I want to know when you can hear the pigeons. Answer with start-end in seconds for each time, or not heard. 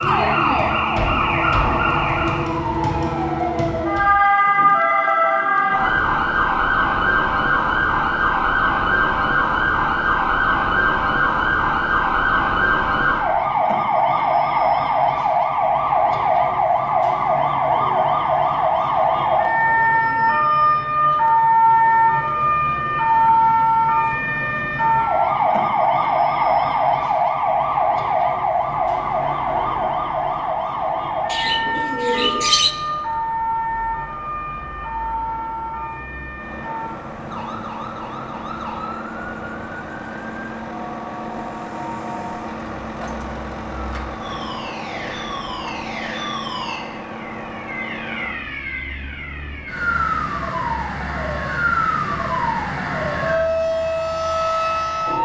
31.2-32.8.